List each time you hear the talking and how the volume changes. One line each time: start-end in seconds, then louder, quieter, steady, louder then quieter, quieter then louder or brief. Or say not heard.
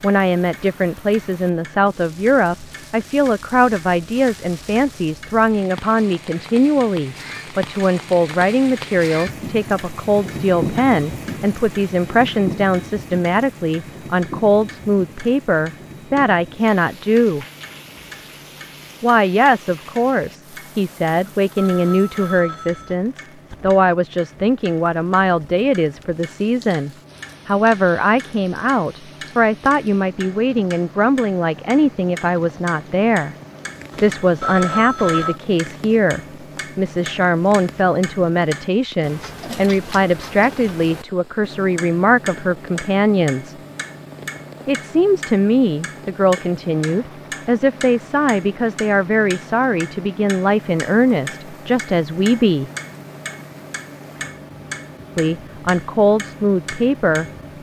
0.0-17.4 steady
19.0-33.4 steady
34.0-43.5 steady
44.6-52.7 steady
55.1-57.2 brief.